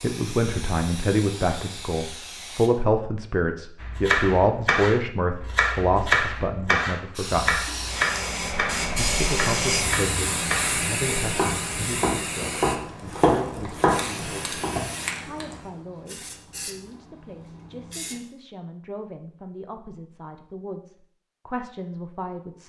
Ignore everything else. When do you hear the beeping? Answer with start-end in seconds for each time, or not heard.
not heard.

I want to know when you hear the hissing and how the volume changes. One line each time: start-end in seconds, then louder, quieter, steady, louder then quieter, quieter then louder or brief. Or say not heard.
0.0-2.7 brief
7.2-18.2 quieter.